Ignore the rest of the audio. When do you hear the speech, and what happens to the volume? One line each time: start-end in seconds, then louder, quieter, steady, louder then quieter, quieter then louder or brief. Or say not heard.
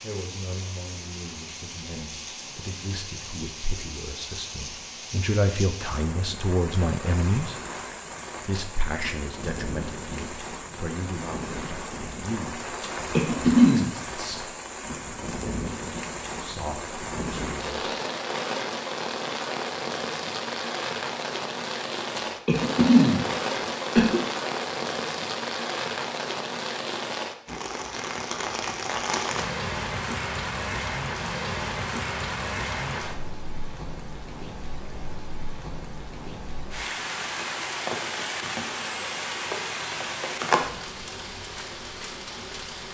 0.0-7.5 louder
8.4-14.6 quieter
16.4-17.8 brief.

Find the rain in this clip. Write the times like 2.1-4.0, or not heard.
0.0-42.8.